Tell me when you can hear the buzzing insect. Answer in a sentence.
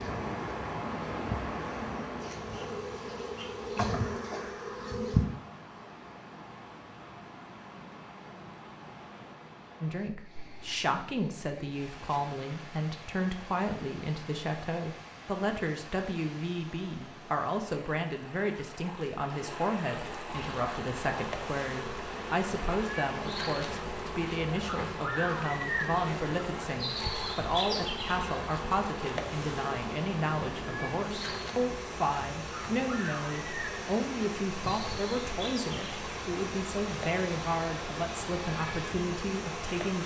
You can hear the buzzing insect from 0.0 to 5.2 s and from 20.2 to 40.0 s.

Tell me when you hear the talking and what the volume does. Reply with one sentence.
The talking can be heard from 9.8 to 40.0 s, at a steady volume.